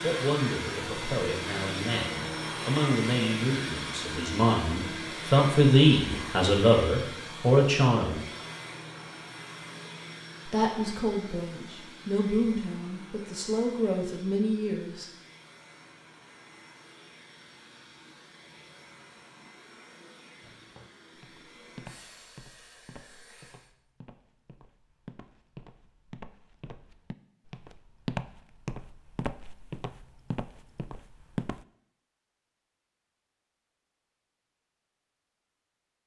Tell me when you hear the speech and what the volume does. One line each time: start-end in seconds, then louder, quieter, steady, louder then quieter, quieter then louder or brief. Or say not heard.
0.0-8.2 louder
10.4-15.1 steady.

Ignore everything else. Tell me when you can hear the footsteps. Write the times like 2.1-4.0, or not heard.
20.4-31.6.